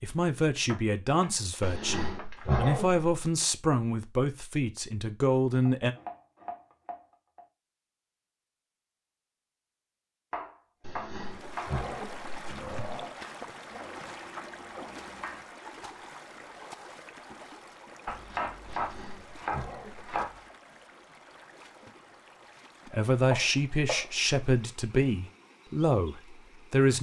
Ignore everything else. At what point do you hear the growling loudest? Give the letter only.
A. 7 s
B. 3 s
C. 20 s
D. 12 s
B.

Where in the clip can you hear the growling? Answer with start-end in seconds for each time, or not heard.
1.6-3.1, 10.8-13.1, 18.7-20.1.